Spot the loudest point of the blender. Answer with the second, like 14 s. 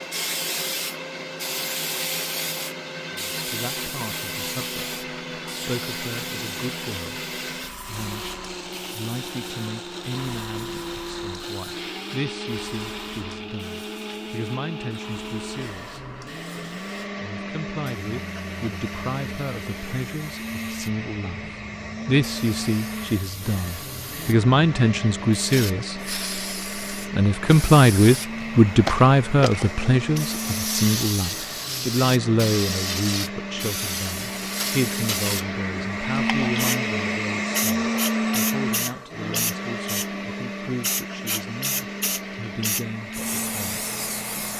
38 s.